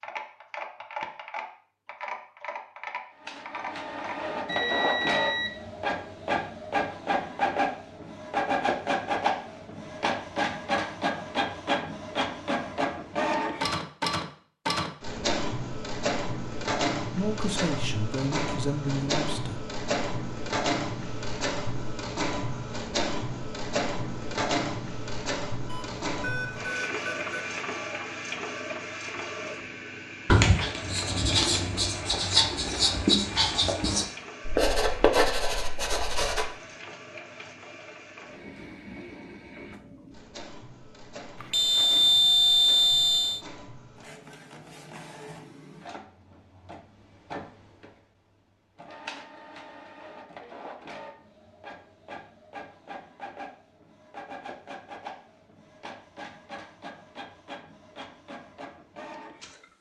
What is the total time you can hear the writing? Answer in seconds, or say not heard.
6 s.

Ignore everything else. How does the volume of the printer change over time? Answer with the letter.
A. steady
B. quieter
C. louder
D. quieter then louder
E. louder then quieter
B.